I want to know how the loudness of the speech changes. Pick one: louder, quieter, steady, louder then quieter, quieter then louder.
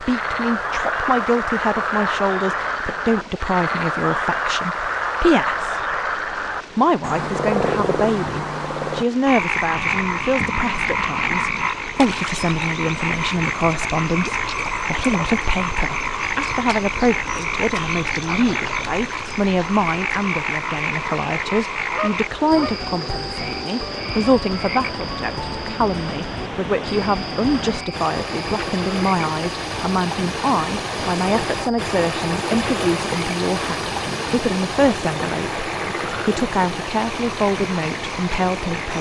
steady.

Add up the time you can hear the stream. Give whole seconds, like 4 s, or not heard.
39 s.